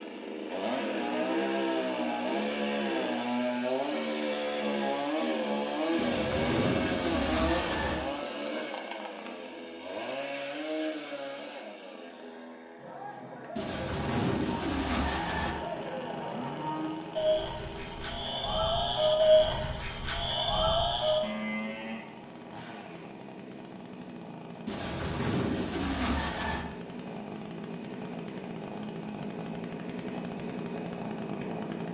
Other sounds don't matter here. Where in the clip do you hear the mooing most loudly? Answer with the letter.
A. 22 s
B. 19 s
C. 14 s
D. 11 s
B.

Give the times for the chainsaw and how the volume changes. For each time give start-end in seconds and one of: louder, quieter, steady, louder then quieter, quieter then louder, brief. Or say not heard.
0.0-31.8 quieter then louder.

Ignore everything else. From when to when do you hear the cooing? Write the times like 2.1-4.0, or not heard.
6.0-8.0, 13.6-15.6, 24.6-26.6.